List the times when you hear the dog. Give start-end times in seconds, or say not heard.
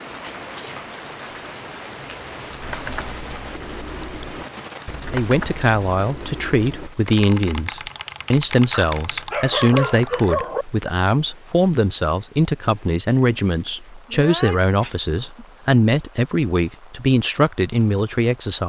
8.7-10.7.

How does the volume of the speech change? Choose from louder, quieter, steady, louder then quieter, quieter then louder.
steady.